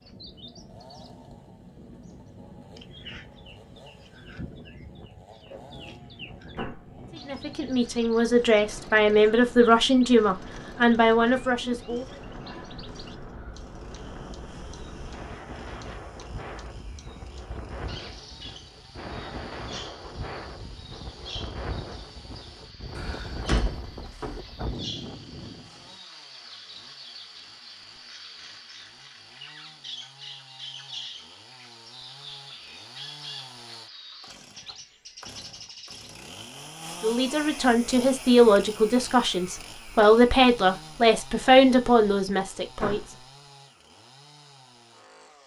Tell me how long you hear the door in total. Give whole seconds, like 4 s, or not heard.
2 s.